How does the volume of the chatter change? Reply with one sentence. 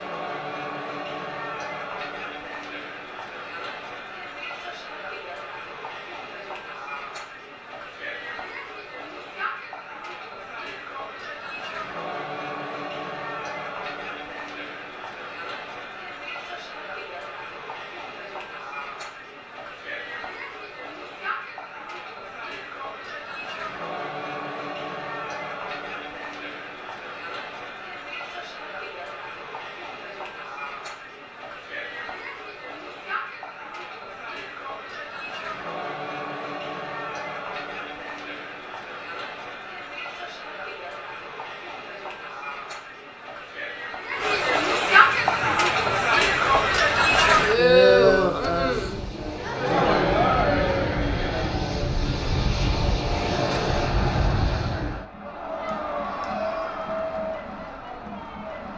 The loudness of the chatter goes up.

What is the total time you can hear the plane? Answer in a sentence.
You can hear the plane for 10 seconds altogether.